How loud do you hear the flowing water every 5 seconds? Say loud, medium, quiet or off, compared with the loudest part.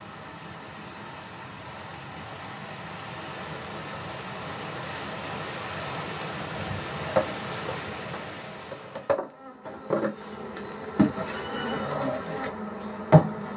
loud, loud, off.